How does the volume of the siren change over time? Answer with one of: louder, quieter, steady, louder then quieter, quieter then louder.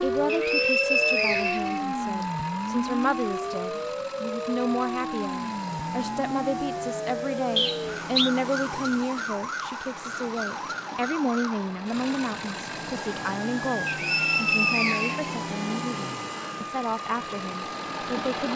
quieter.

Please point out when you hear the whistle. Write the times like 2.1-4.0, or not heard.
0.2-2.2, 7.5-8.3, 13.8-15.3.